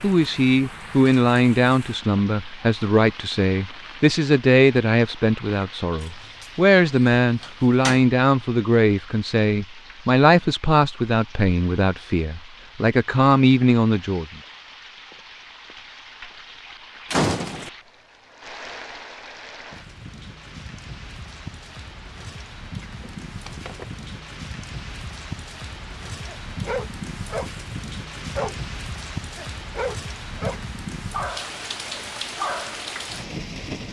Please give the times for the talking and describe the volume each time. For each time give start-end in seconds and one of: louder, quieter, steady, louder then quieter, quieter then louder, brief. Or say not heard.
0.0-14.2 steady.